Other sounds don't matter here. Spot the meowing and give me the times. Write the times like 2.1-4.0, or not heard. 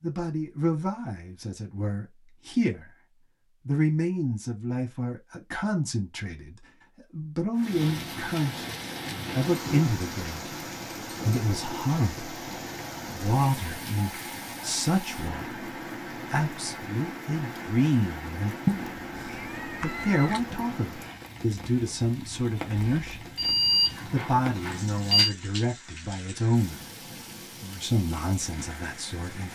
18.6-20.6.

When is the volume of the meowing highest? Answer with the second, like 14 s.
19 s.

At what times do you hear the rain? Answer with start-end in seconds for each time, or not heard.
7.5-29.5.